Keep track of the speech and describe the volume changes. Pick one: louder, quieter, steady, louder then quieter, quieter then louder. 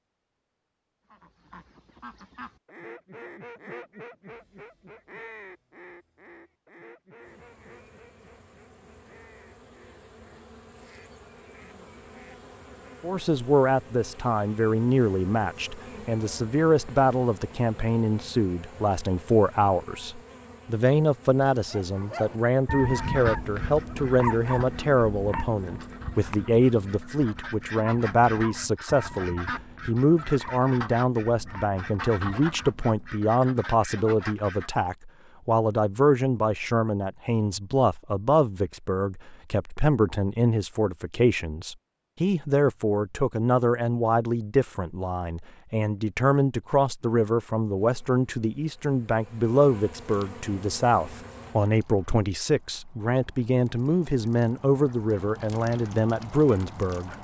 steady.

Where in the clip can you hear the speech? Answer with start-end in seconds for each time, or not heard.
13.0-57.1.